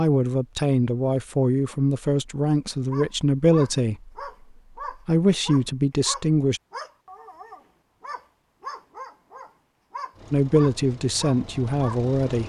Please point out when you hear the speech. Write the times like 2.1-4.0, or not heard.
0.0-4.1, 4.9-6.6, 10.3-12.4.